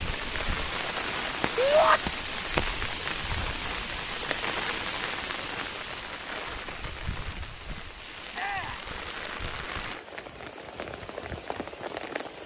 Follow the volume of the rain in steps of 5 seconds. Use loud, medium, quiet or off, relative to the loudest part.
loud, medium, medium.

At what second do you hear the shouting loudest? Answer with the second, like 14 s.
2 s.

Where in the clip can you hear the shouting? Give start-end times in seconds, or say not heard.
1.6-2.0, 8.3-8.8.